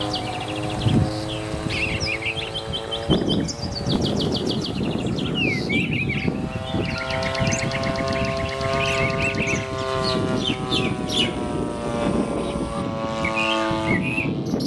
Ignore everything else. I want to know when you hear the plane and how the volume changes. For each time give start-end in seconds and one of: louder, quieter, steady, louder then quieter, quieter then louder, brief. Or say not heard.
0.0-14.6 steady.